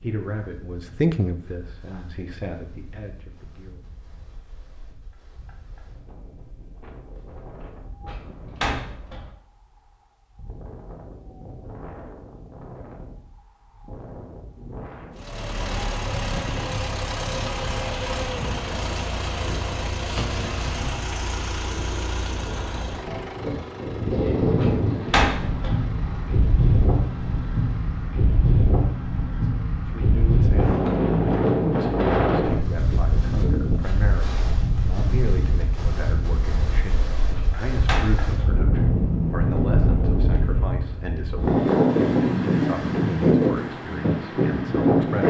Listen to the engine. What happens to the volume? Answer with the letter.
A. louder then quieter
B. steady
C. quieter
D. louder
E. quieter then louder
C.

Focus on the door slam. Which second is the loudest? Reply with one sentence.
The loudest moment of the door slam is at 25 seconds.